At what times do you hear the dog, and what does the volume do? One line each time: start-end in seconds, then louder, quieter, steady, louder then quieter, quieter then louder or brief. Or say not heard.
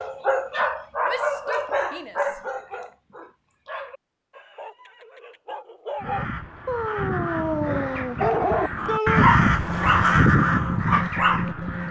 0.0-11.8 quieter then louder.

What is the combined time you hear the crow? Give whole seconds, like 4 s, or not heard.
6 s.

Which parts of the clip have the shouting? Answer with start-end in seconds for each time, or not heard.
1.1-2.4, 8.8-9.3.